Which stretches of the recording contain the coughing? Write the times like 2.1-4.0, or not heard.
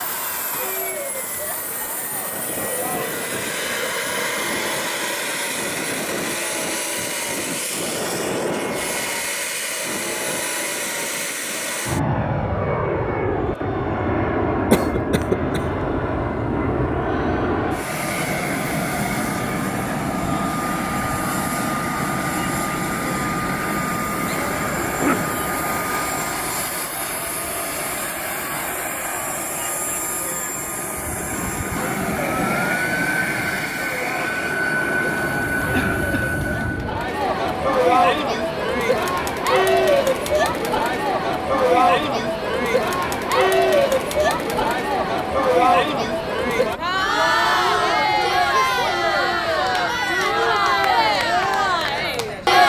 14.7-15.8, 24.8-25.4, 35.7-36.4.